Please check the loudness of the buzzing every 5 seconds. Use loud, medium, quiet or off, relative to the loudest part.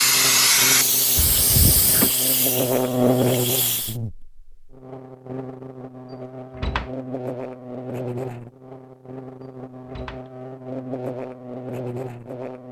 loud, medium, medium.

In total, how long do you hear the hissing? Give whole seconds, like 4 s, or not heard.
4 s.